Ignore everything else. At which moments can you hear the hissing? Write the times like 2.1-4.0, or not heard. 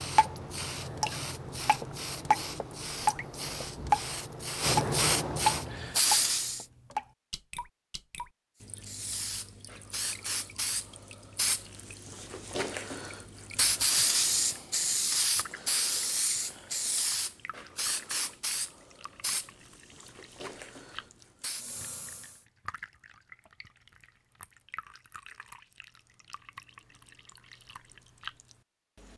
0.0-6.7, 8.6-22.4.